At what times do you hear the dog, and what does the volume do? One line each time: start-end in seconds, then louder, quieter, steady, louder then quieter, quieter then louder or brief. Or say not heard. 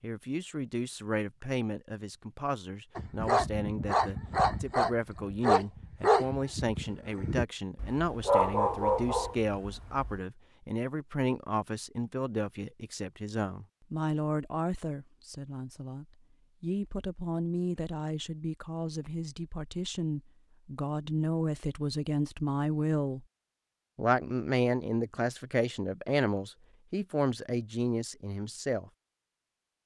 3.0-10.2 steady.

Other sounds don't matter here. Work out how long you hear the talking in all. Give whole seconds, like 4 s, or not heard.
28 s.